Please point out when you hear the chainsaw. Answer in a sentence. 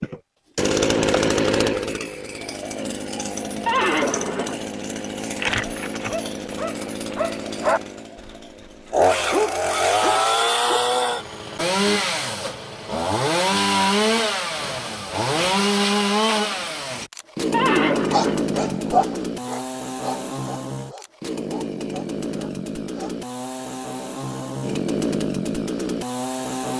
You can hear the chainsaw from 0.0 to 26.7 s.